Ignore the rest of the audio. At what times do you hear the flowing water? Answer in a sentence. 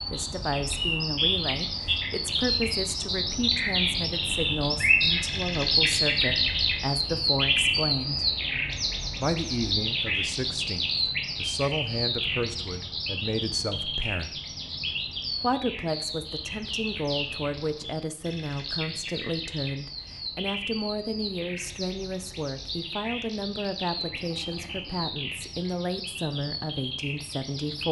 The flowing water can't be heard in this clip.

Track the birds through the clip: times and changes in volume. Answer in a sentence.
The birds can be heard from 0.0 to 27.8 s, getting quieter.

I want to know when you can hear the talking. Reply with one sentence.
The talking can be heard from 0.1 to 8.2 s, from 9.2 to 14.4 s and from 15.4 to 27.8 s.